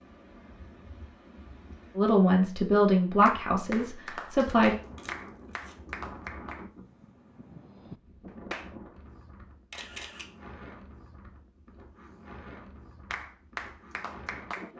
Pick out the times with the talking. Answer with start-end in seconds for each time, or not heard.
1.9-4.8.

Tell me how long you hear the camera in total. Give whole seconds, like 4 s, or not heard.
2 s.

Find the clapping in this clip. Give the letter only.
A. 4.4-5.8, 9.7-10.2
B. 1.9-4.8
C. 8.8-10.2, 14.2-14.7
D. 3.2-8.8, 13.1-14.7
D.